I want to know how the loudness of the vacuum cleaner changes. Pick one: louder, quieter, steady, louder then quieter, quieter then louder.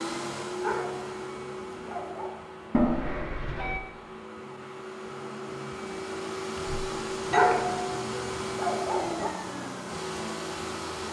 quieter then louder.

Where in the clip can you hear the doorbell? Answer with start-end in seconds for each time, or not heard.
2.7-3.8, 6.5-8.0.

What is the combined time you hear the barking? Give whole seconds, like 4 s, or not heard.
4 s.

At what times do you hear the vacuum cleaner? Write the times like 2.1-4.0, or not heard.
0.0-11.0.